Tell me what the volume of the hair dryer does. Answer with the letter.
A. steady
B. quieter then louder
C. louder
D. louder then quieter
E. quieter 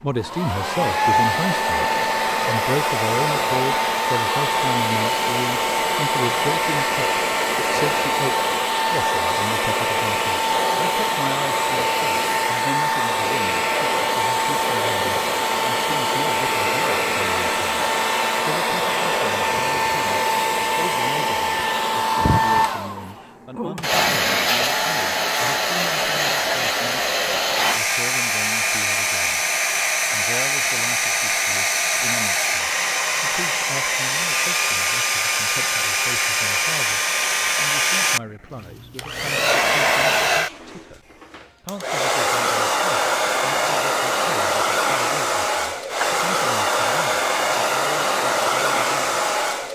A.